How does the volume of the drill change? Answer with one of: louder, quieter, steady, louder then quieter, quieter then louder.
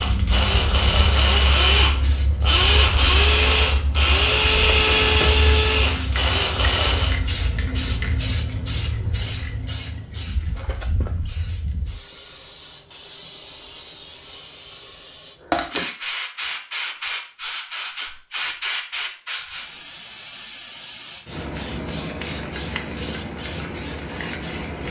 steady.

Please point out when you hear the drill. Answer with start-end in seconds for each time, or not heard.
0.0-7.2.